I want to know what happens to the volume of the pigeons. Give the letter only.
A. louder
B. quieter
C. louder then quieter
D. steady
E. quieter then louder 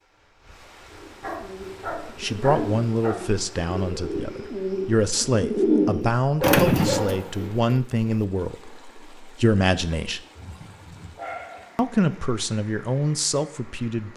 A.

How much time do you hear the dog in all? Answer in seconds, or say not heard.
4 s.